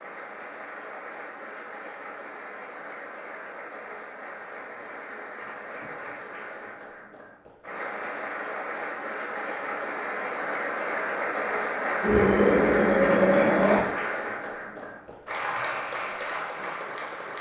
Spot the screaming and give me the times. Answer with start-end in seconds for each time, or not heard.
12.0-13.8.